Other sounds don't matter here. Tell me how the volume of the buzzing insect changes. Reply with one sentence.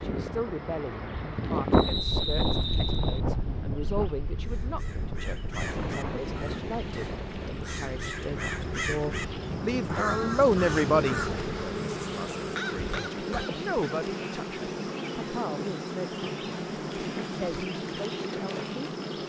The volume of the buzzing insect goes up.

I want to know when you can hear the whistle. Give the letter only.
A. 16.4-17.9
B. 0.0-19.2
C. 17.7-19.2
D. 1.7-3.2
D.